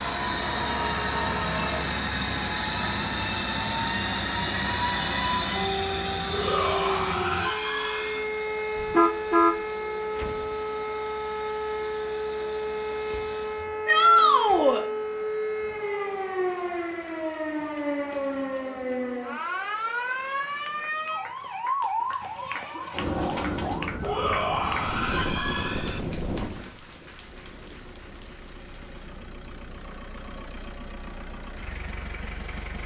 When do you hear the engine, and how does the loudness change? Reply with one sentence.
You can hear the engine from 0.0 to 13.7 s, getting quieter; and from 27.3 to 32.8 s, getting louder.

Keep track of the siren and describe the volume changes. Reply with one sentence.
The loudness of the siren goes down.